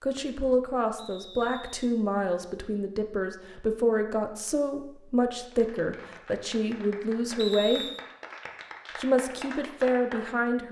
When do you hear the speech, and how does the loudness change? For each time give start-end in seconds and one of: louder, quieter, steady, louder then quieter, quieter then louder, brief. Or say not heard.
0.0-7.8 steady
8.9-10.6 brief.